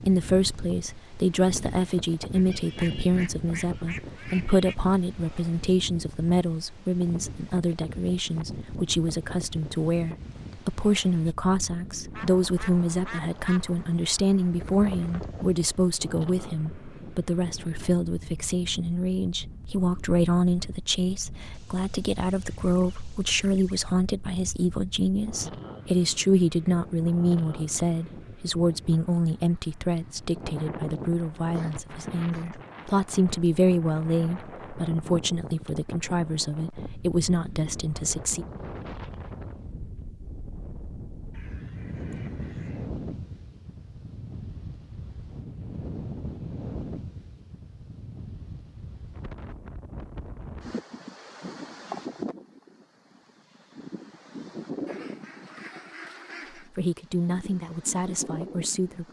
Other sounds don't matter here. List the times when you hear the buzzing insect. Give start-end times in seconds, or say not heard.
not heard.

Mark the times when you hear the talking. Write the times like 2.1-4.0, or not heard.
0.1-38.5, 56.5-59.0.